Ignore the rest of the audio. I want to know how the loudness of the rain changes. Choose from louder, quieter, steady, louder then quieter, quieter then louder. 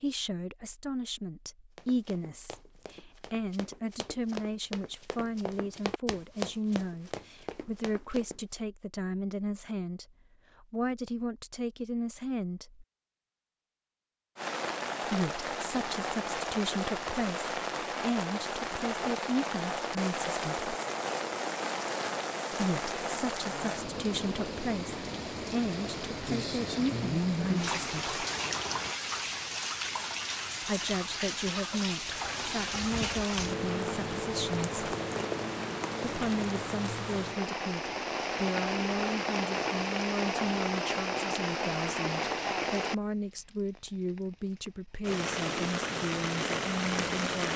steady.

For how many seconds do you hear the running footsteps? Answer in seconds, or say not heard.
7 s.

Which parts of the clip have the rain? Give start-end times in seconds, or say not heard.
14.3-47.5.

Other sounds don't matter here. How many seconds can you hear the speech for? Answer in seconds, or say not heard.
40 s.